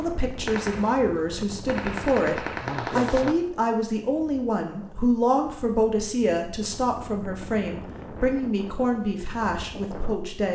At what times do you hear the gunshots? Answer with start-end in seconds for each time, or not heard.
0.5-3.4.